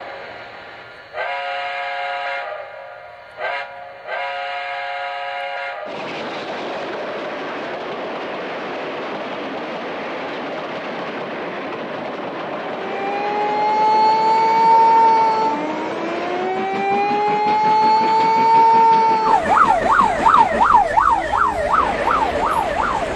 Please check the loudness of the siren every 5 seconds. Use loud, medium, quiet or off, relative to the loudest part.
off, off, loud, loud, loud.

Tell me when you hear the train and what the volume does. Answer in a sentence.
The train can be heard from 0.0 to 23.1 s, at a steady volume.